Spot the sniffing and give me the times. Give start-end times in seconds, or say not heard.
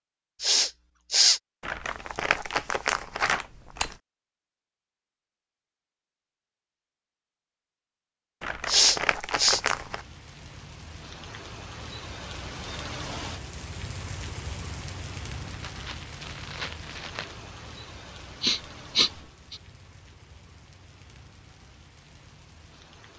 0.4-1.4, 8.7-9.6, 18.4-19.6.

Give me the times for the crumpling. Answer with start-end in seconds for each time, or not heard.
1.6-4.0, 8.4-10.1, 15.4-17.4.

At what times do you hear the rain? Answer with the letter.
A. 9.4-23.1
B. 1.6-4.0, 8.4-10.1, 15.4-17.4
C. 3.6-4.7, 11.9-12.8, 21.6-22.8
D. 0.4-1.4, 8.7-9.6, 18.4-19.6
A.